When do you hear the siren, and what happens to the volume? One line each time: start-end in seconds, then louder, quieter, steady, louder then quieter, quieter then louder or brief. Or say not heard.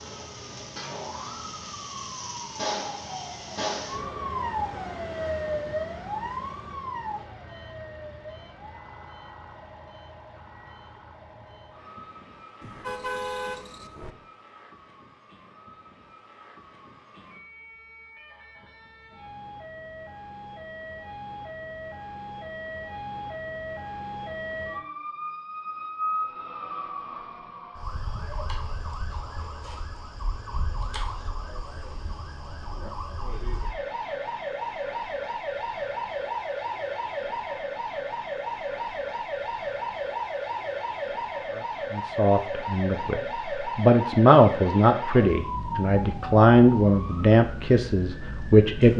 0.0-48.9 quieter then louder.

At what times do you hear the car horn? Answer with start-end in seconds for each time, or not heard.
12.6-14.2.